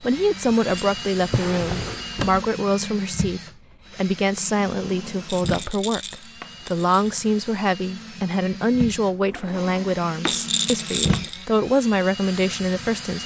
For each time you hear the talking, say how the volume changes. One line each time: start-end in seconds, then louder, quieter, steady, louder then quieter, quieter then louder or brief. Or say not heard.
0.0-13.2 steady.